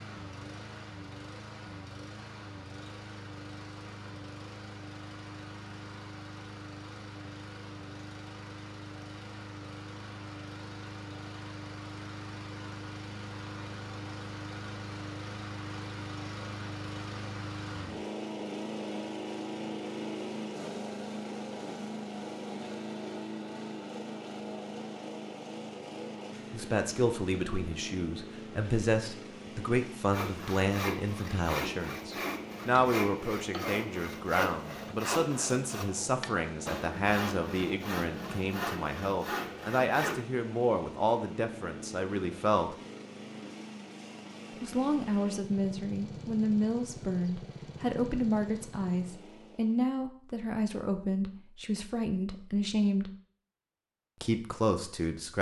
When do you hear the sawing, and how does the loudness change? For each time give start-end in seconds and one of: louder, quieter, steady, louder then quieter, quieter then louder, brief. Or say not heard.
30.1-40.2 steady.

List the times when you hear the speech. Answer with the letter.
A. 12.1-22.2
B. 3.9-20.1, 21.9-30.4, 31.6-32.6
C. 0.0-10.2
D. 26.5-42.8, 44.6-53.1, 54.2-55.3
D.